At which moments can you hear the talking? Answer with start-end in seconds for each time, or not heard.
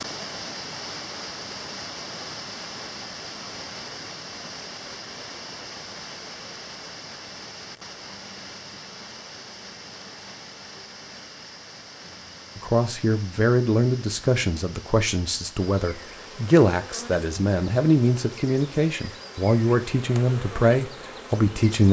12.6-21.8.